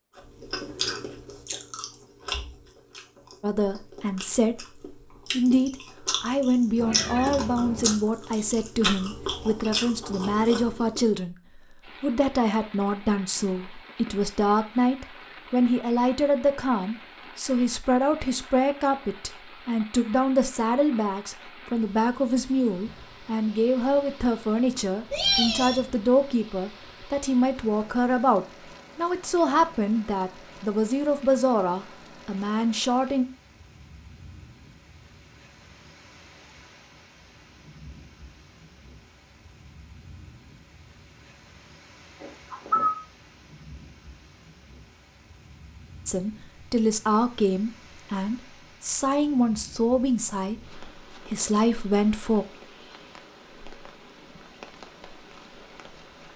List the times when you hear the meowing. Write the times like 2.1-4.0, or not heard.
6.8-8.0, 25.1-25.8, 42.2-43.0.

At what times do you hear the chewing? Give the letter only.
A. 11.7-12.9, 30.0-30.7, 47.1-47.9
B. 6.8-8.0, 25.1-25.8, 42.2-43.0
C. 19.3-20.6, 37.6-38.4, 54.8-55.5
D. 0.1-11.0
D.